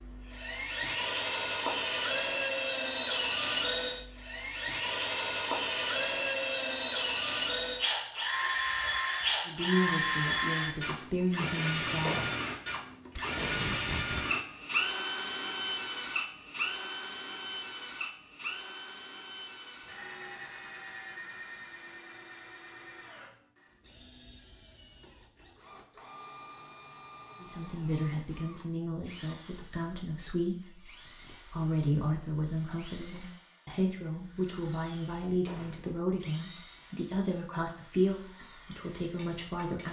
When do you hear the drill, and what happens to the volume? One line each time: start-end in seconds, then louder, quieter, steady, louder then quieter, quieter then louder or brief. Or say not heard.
0.0-39.8 quieter.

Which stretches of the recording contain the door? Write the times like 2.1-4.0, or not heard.
12.1-12.5, 35.5-36.0.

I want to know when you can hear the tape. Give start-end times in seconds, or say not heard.
13.2-14.3.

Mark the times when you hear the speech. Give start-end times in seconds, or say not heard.
9.4-12.2, 27.4-39.8.